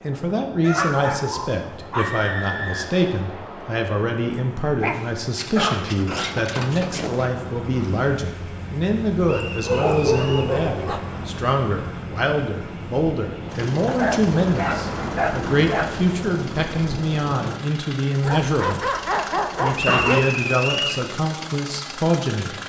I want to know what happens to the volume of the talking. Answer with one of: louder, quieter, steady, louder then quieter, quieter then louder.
steady.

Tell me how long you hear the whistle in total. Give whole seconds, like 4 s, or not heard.
4 s.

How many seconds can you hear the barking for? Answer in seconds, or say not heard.
10 s.